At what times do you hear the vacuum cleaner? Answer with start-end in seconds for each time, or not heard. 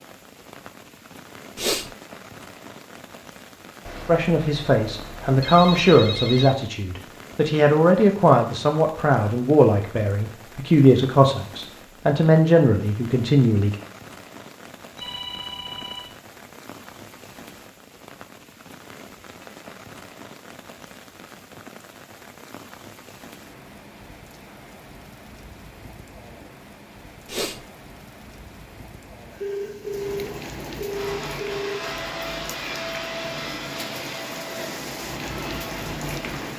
30.9-36.5.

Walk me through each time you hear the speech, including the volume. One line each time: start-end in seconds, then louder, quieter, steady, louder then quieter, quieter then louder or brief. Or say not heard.
4.0-13.8 steady.